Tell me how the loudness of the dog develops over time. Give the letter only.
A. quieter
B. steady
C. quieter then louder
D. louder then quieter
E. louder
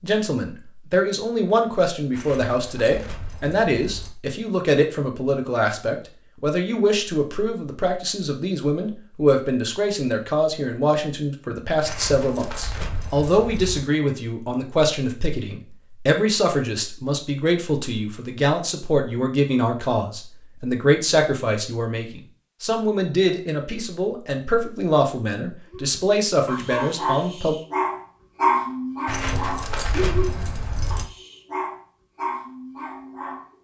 D.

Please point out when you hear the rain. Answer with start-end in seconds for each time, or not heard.
not heard.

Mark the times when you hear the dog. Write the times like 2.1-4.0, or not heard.
25.6-33.5.